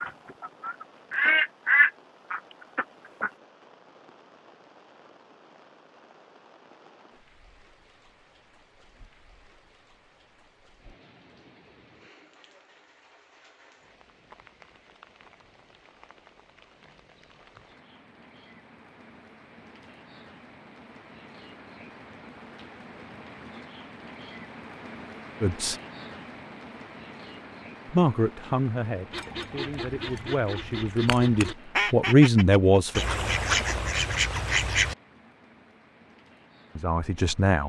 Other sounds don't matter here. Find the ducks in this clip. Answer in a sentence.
You can hear the ducks from 0.0 to 3.3 s and from 29.1 to 35.0 s.